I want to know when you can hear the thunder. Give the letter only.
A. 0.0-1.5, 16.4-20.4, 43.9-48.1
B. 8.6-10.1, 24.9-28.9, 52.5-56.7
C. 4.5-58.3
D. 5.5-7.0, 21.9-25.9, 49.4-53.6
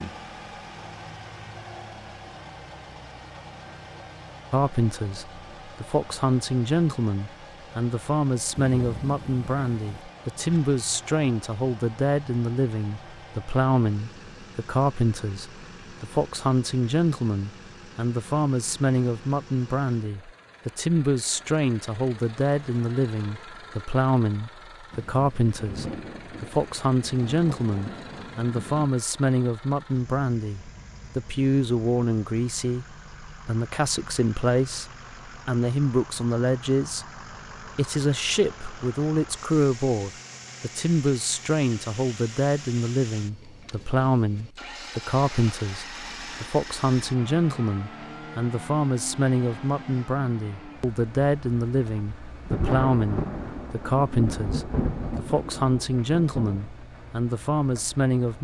B.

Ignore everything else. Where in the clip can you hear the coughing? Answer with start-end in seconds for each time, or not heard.
not heard.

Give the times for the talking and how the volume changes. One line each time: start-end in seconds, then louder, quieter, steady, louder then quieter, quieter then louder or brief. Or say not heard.
4.5-58.3 steady.